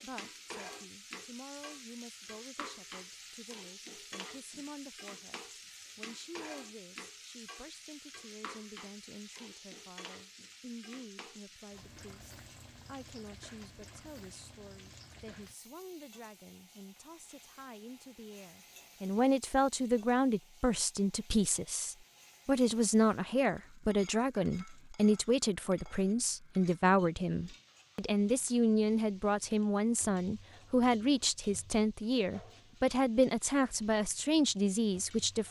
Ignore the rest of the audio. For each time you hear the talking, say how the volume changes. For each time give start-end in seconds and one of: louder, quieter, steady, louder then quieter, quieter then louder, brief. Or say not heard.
0.0-35.4 louder.